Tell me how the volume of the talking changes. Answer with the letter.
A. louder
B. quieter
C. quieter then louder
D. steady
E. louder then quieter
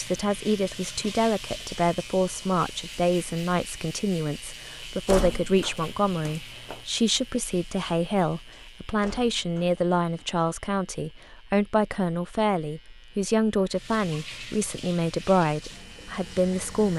D.